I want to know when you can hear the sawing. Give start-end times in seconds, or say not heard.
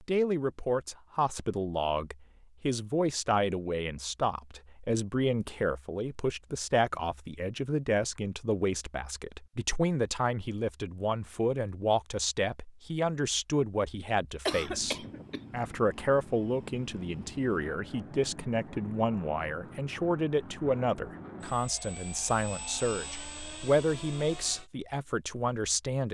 not heard.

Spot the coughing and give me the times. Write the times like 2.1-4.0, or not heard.
14.4-15.4.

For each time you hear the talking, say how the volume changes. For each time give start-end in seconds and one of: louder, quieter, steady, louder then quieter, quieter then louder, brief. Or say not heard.
0.0-26.0 steady.